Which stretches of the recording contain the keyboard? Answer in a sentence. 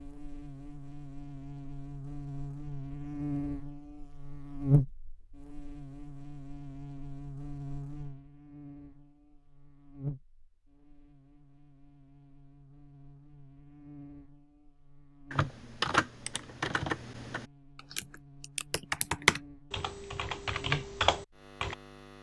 The keyboard can be heard from 15.3 to 21.8 s.